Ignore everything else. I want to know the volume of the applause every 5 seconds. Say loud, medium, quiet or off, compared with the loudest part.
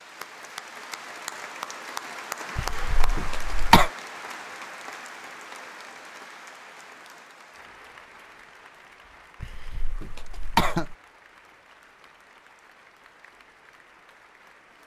loud, medium, quiet.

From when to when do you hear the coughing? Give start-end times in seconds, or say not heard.
2.5-3.9, 9.4-10.9.